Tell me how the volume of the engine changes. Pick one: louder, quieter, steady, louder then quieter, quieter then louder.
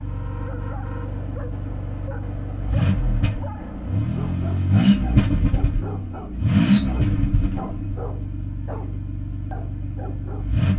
louder then quieter.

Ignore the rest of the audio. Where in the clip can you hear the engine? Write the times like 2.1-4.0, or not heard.
0.0-10.7.